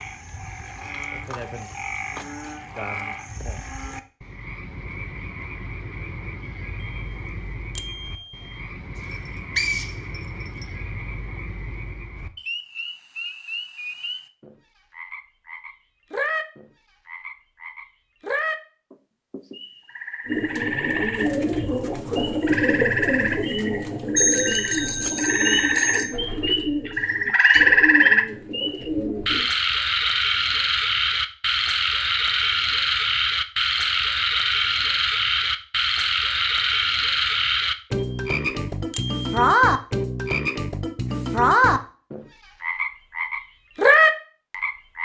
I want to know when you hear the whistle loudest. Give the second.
10 s.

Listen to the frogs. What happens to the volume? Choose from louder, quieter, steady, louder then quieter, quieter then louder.
louder.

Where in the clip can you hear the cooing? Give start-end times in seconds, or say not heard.
20.2-29.5.